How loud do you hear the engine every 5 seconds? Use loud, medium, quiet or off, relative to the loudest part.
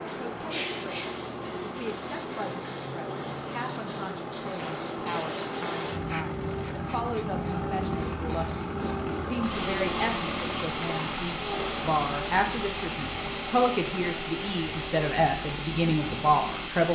medium, loud, loud, medium.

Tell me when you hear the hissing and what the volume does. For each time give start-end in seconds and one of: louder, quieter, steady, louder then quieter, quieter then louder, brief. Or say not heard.
0.0-16.9 steady.